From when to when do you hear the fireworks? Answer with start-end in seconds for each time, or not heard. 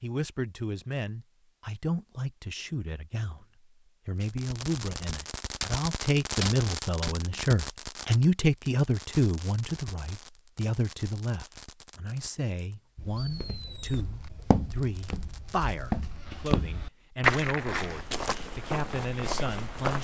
4.2-15.9.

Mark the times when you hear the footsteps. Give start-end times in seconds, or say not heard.
12.9-19.9.